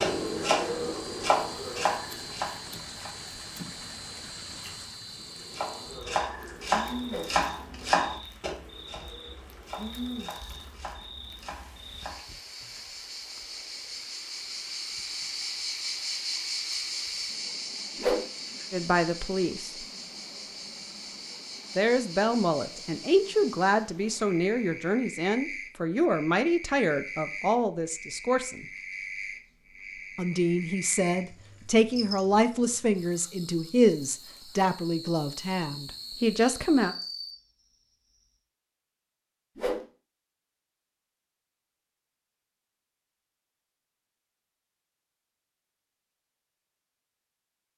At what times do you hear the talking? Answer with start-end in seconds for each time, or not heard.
18.7-19.8, 21.8-28.6, 30.1-37.0.